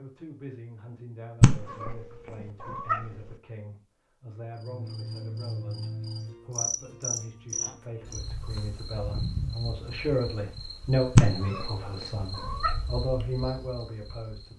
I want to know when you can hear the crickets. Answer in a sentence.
You can hear the crickets from 4.5 to 14.5 s.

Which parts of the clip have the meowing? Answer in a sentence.
The meowing can be heard from 1.4 to 3.4 s and from 11.2 to 12.8 s.